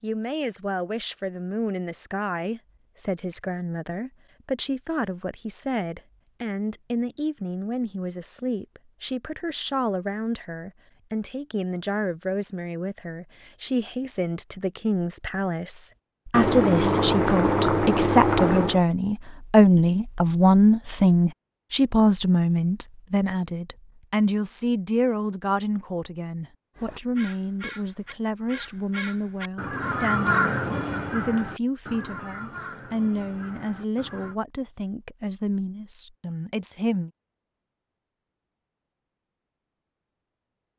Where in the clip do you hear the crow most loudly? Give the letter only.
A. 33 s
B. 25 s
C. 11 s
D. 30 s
D.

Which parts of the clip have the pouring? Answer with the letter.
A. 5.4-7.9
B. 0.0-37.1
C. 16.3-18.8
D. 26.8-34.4
C.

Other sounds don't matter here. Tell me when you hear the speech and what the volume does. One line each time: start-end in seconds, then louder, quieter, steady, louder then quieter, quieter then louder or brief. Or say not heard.
0.0-37.1 louder then quieter.